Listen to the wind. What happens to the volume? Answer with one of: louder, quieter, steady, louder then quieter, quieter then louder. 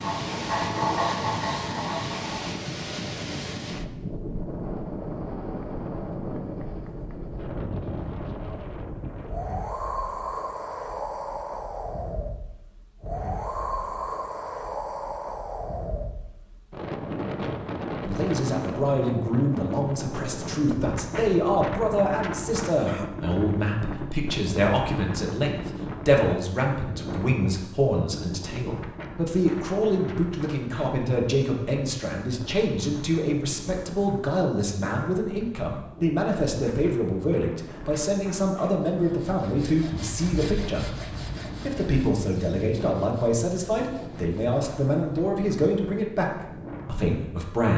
quieter.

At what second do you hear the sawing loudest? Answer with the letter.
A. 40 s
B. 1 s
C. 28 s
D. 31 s
B.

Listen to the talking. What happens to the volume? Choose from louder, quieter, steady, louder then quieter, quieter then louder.
steady.